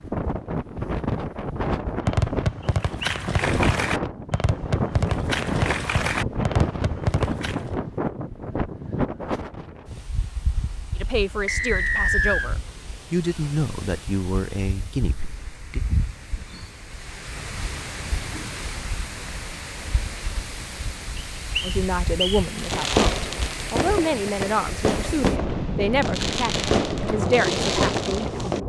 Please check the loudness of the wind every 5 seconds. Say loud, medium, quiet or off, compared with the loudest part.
loud, loud, quiet, medium, medium, loud.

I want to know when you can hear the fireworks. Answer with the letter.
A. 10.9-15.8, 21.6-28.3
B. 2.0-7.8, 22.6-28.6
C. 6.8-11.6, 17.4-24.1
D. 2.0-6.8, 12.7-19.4
B.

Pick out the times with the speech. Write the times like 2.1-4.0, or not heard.
10.9-15.8, 21.6-28.3.